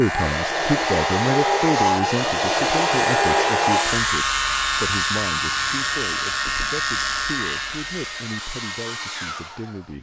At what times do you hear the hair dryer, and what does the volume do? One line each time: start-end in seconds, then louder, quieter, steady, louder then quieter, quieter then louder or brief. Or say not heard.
0.0-9.9 quieter.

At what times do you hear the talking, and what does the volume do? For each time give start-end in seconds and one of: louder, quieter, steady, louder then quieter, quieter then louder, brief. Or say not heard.
0.0-9.9 quieter.